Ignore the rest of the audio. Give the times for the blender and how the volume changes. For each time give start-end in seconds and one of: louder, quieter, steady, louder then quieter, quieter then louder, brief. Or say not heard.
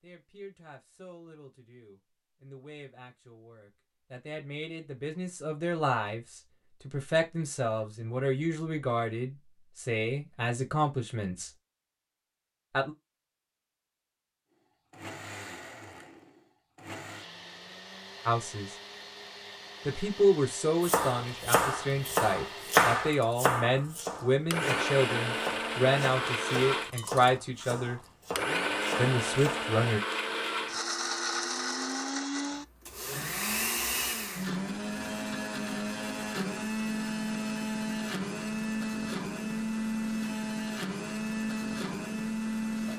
14.9-42.9 louder.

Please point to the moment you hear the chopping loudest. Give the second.
23 s.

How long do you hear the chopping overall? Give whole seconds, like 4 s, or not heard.
9 s.